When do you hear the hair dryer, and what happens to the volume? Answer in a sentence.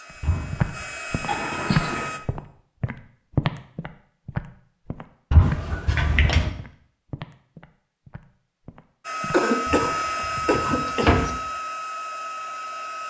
You can hear the hair dryer briefly from 0.0 to 2.2 s; and from 9.0 to 13.0 s, getting quieter.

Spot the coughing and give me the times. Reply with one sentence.
You can hear the coughing from 1.2 to 2.1 s and from 9.3 to 11.3 s.